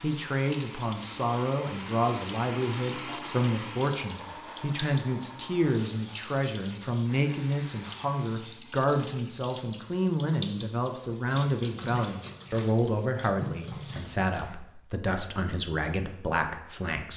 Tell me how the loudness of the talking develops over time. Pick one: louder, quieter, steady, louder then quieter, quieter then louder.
steady.